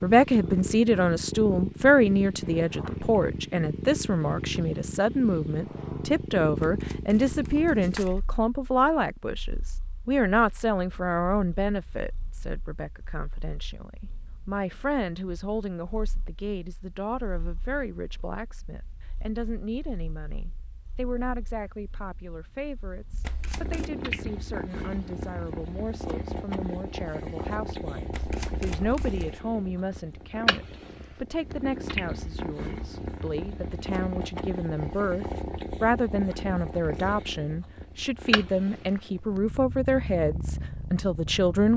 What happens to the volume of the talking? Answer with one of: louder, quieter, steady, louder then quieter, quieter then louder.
quieter then louder.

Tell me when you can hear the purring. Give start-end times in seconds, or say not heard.
0.0-41.7.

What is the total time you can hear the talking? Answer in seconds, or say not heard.
42 s.